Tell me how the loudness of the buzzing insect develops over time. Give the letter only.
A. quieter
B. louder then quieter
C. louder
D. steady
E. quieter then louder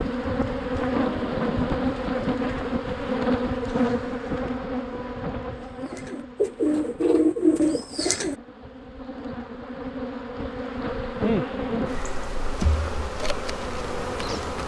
E.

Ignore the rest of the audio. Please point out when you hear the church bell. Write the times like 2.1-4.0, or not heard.
not heard.